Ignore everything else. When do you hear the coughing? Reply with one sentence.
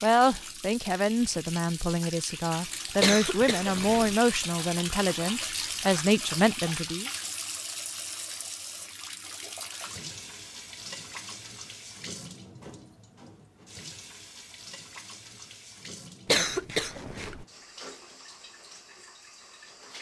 You can hear the coughing from 3.0 to 4.2 s and from 16.2 to 17.4 s.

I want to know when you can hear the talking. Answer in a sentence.
You can hear the talking from 0.0 to 7.1 s.